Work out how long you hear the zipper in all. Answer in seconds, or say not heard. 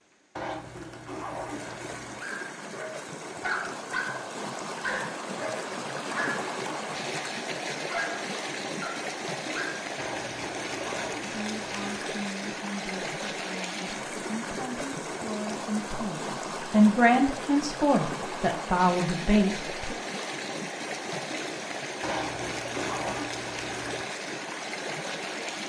6 s.